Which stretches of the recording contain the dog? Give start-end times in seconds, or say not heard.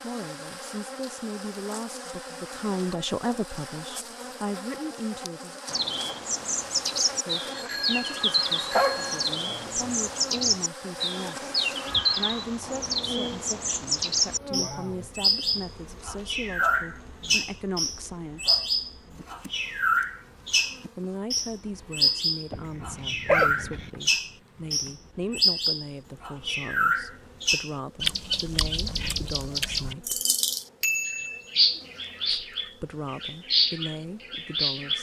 8.7-10.6, 22.5-23.9.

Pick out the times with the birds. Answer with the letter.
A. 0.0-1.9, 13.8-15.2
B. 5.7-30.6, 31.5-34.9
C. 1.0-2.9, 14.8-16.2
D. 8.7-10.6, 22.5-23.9
B.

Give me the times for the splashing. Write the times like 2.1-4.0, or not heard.
not heard.